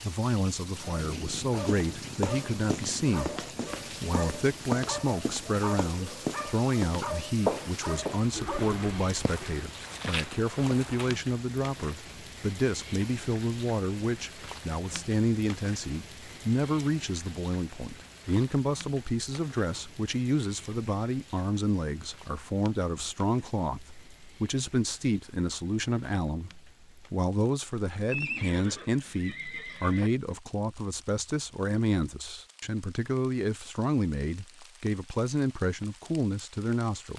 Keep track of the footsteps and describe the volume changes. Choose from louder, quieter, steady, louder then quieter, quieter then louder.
louder then quieter.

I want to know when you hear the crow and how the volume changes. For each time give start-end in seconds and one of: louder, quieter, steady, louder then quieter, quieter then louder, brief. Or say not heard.
not heard.